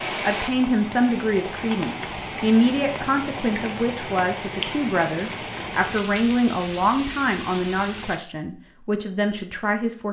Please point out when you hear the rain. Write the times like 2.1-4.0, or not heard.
0.0-8.2.